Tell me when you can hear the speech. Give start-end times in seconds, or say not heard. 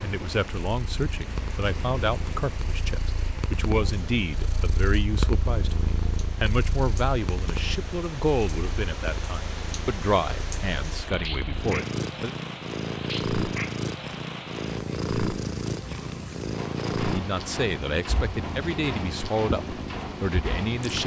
0.0-12.3, 17.1-21.0.